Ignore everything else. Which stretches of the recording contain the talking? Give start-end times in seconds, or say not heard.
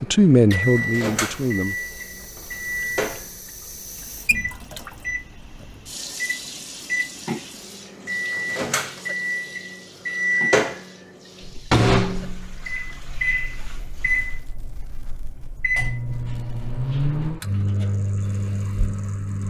0.0-1.8.